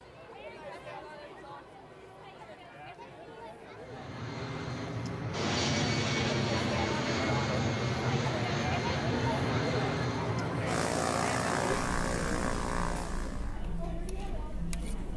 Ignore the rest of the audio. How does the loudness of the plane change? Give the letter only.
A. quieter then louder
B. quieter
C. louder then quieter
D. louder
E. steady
E.